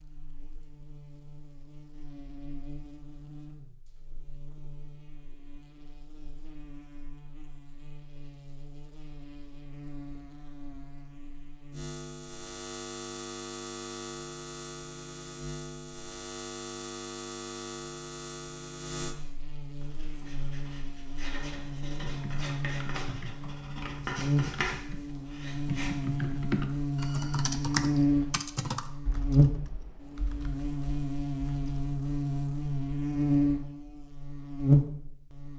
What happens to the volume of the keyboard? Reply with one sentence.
The volume of the keyboard goes up, then down.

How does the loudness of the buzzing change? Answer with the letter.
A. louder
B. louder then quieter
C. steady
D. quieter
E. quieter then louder
A.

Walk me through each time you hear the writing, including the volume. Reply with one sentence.
You can hear the writing from 19.8 to 25.9 s, getting louder.